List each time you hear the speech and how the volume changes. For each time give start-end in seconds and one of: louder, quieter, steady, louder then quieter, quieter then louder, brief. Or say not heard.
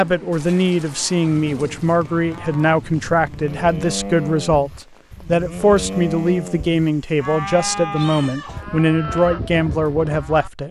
0.0-10.6 steady.